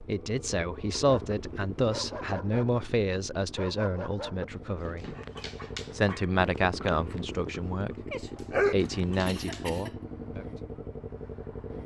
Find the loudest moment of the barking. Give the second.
9 s.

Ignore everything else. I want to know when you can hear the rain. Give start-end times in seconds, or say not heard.
not heard.